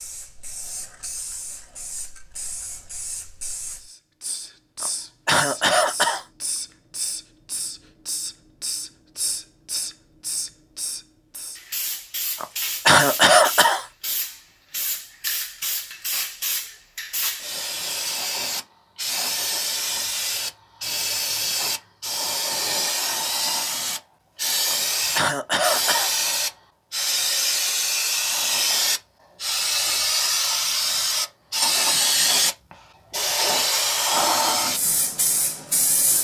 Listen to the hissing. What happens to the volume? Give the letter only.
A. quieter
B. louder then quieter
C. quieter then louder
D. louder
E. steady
D.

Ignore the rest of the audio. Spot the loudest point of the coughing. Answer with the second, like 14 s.
13 s.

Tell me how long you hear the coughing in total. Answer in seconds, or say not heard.
4 s.